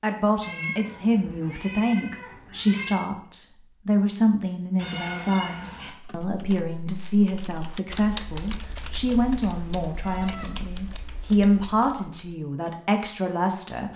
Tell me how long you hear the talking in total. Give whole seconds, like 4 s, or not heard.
14 s.